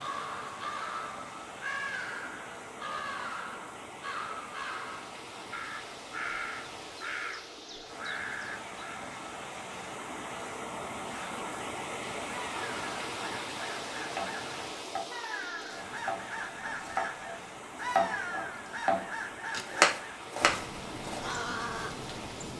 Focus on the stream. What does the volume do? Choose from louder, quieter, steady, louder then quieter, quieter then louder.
louder then quieter.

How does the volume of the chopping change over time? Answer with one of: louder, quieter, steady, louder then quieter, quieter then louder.
louder.